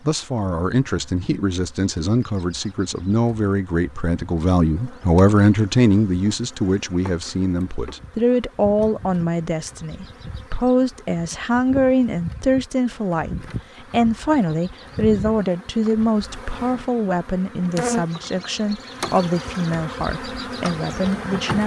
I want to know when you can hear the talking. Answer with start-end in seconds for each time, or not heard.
0.1-21.6.